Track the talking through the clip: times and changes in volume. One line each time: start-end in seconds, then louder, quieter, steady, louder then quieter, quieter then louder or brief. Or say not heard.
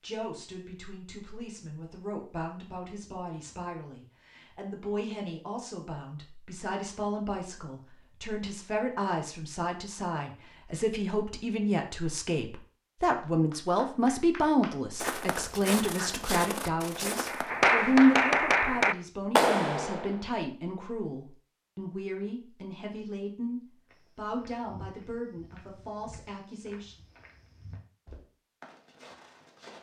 0.0-26.9 louder then quieter.